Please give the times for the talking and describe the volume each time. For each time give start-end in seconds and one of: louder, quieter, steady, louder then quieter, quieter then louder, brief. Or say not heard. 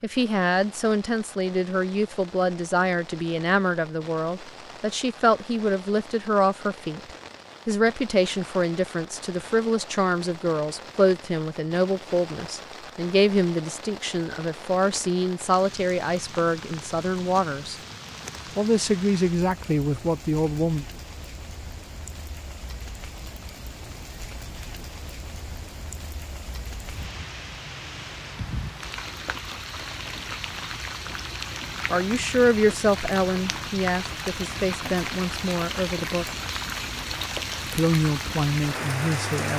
0.0-17.8 steady
18.6-20.9 brief
31.9-36.2 quieter
37.6-39.5 brief.